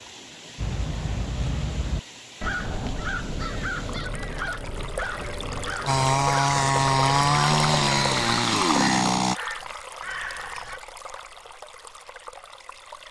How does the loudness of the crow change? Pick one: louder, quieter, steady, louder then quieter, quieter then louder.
steady.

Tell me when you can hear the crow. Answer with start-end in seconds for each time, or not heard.
0.6-10.8.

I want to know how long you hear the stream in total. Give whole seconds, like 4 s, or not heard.
13 s.